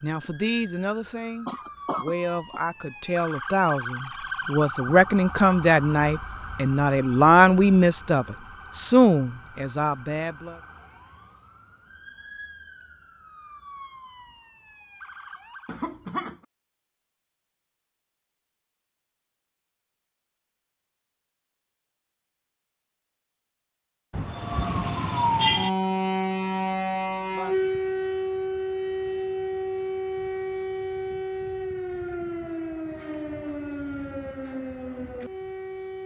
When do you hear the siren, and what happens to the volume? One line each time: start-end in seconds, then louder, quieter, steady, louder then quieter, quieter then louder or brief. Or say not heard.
0.0-15.9 louder then quieter
24.2-36.0 quieter.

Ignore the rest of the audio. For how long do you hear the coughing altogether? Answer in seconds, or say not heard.
3 s.